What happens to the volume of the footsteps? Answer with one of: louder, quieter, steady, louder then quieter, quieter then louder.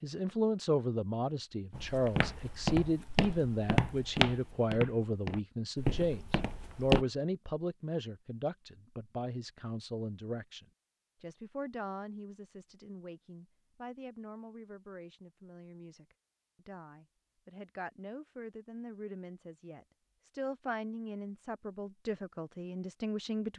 quieter then louder.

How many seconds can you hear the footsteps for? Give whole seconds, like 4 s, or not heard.
5 s.